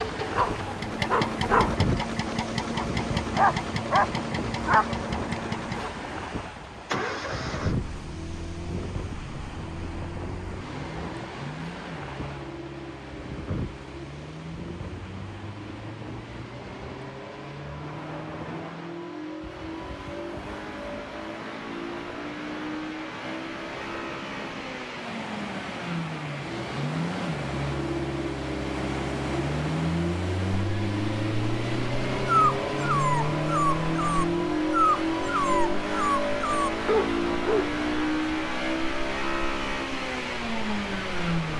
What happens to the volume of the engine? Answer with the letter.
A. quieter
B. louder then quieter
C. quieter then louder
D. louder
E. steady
C.